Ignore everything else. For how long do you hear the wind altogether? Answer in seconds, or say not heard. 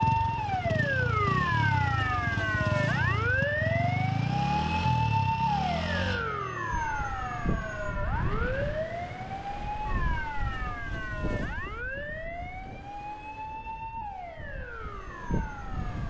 9 s.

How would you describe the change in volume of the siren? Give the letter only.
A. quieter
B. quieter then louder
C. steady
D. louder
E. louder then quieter
A.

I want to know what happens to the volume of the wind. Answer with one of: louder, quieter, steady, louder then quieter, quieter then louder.
quieter then louder.